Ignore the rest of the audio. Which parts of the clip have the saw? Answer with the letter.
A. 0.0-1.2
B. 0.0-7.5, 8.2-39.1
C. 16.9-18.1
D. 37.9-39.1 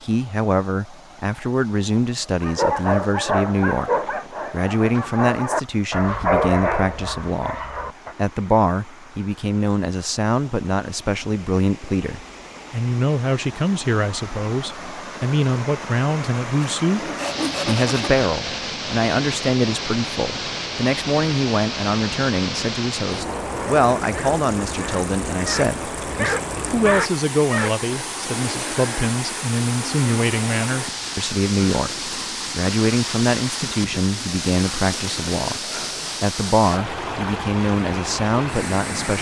C.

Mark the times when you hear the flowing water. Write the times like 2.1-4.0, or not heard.
0.0-39.1.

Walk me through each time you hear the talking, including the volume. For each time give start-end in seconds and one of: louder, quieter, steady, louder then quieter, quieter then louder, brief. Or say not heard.
0.0-7.5 steady
8.2-39.1 steady.